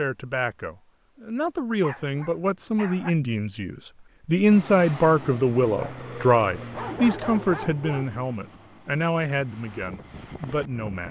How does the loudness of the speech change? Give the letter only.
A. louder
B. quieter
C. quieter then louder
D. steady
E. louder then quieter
E.